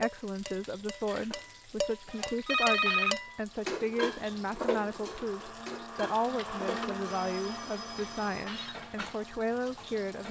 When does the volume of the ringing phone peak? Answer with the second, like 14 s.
3 s.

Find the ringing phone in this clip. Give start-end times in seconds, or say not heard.
2.0-3.1, 6.2-8.8.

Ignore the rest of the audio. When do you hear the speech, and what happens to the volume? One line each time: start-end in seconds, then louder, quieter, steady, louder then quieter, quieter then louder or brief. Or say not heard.
0.0-10.2 steady.